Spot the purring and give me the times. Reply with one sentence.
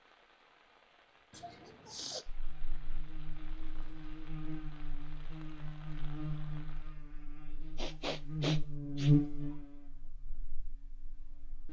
The purring can't be heard in this clip.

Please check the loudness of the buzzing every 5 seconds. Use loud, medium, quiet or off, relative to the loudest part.
quiet, loud, quiet.